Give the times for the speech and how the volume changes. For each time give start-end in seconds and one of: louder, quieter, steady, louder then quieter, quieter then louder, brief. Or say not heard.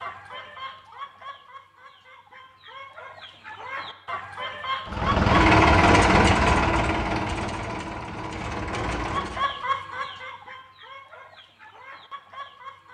not heard.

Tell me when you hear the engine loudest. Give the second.
6 s.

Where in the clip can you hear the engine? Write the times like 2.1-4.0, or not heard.
4.8-9.4.